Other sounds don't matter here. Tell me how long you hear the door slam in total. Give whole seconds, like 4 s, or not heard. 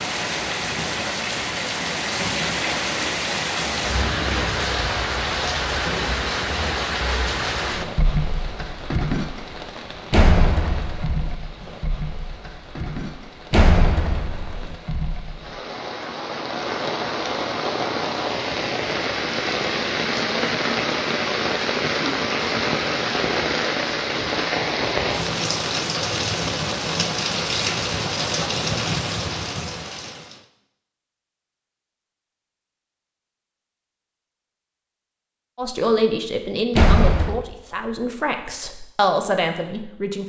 3 s.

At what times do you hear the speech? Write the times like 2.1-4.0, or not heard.
35.5-40.2.